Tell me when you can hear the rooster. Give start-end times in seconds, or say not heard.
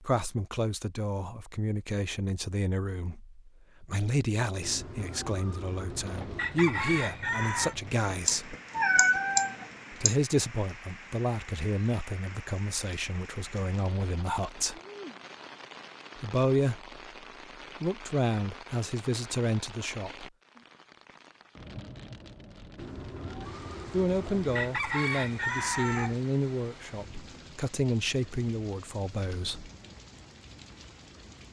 4.6-7.8, 22.8-26.2.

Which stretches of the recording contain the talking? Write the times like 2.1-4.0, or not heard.
0.0-8.6, 9.9-14.8, 16.1-17.0, 17.8-20.3, 23.9-29.7.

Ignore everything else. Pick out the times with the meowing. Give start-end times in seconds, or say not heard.
8.2-10.2.